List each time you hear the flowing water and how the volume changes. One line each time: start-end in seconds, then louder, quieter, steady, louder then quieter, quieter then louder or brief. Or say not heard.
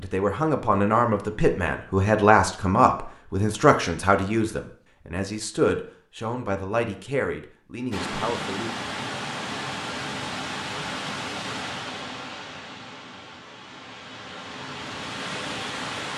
7.9-16.1 quieter then louder.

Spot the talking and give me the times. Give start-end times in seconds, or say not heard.
0.0-8.7.